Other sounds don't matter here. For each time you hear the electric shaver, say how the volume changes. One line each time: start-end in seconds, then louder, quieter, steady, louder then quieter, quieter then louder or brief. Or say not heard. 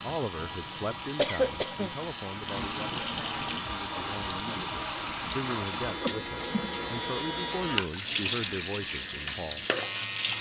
0.0-10.3 louder.